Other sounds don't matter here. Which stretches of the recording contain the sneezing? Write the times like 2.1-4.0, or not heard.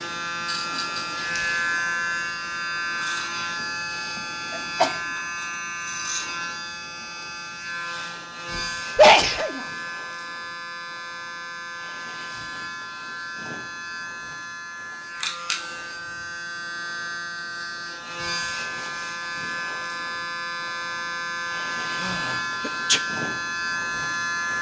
4.5-5.0, 8.6-9.7, 22.0-23.0.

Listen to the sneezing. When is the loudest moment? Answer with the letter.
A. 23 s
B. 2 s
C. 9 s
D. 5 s
C.